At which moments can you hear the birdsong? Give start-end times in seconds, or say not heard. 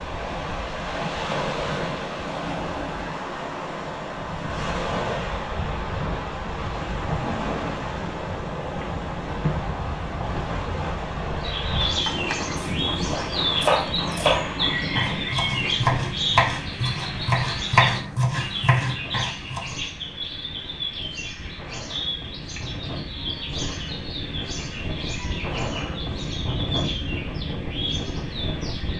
11.4-28.9.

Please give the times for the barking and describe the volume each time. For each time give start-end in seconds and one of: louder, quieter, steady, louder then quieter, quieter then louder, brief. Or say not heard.
not heard.